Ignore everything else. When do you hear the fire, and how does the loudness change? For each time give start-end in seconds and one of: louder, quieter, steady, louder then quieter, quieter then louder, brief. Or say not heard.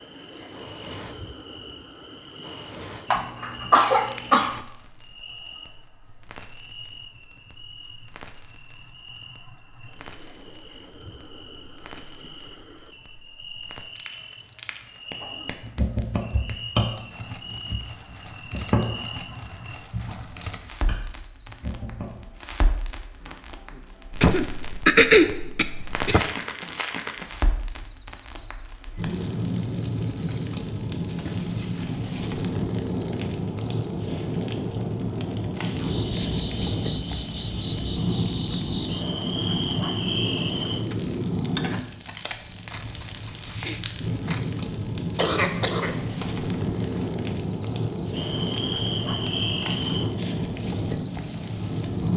0.4-52.1 louder.